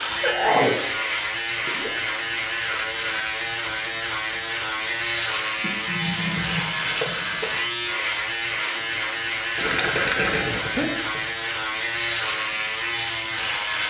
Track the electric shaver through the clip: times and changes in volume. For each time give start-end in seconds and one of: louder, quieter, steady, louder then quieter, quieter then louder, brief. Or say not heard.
0.0-13.8 steady.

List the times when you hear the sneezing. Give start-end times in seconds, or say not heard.
0.2-0.8, 5.6-7.5, 10.6-11.1.